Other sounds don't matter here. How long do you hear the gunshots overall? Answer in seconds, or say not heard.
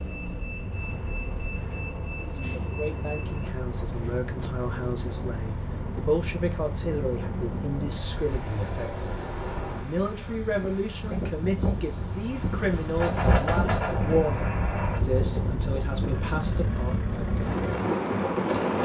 2 s.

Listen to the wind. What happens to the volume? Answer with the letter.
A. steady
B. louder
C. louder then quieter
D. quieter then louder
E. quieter
B.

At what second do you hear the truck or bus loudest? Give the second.
18 s.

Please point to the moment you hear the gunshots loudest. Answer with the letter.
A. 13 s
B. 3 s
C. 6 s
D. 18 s
A.